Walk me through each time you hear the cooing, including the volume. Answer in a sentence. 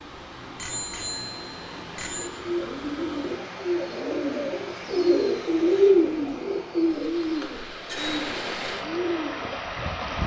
You can hear the cooing from 2.0 to 9.4 s, getting louder then quieter.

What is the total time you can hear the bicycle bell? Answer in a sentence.
You can hear the bicycle bell for 3 seconds altogether.